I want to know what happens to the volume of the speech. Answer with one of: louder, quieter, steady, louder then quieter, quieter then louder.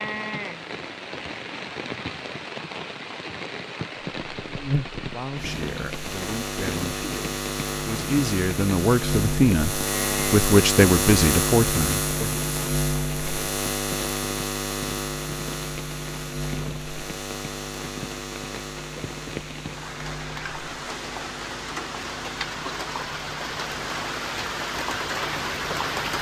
louder.